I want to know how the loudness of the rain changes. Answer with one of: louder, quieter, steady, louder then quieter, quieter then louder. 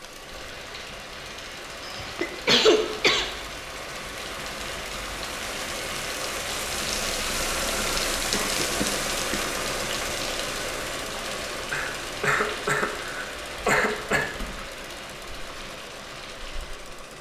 louder then quieter.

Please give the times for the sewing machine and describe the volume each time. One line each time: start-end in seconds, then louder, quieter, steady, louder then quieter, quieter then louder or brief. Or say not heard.
0.0-17.1 louder then quieter.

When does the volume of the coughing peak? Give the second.
3 s.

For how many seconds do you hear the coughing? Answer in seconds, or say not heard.
5 s.